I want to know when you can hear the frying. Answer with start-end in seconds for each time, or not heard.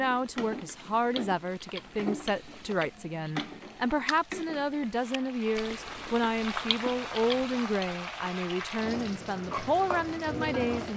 0.0-10.9.